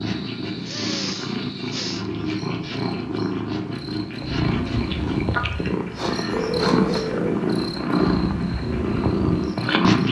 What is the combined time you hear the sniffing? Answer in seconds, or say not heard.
3 s.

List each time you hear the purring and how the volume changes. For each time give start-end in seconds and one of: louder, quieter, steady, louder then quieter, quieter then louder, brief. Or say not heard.
0.0-10.0 louder.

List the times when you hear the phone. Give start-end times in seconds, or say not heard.
6.3-7.3.